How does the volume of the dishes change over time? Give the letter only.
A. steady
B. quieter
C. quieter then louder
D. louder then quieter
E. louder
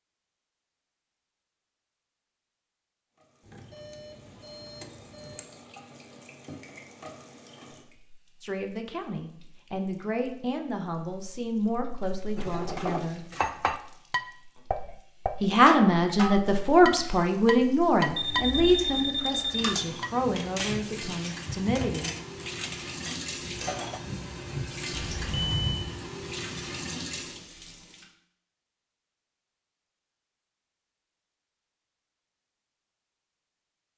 B.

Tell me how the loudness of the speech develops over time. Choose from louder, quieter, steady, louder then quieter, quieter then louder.
louder then quieter.